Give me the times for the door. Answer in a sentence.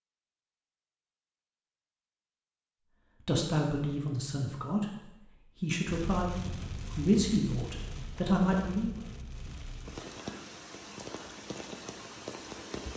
You can't hear the door here.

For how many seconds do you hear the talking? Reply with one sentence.
You can hear the talking for 6 seconds altogether.